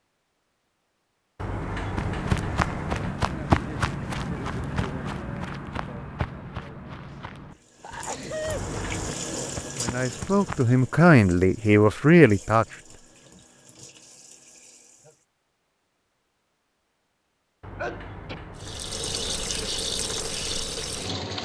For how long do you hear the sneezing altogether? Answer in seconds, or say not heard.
2 s.